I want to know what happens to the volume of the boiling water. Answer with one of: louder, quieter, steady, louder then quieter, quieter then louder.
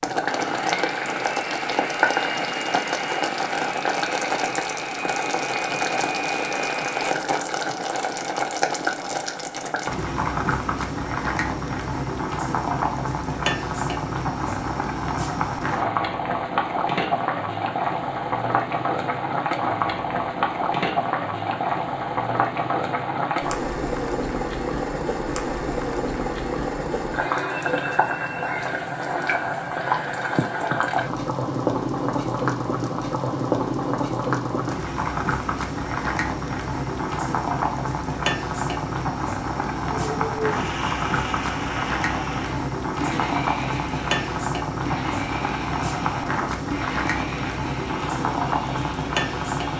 steady.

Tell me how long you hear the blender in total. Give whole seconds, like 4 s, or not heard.
17 s.